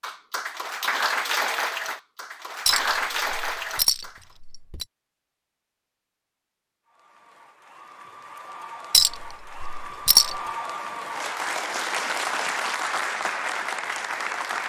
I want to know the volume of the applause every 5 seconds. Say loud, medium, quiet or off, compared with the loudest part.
loud, quiet, loud.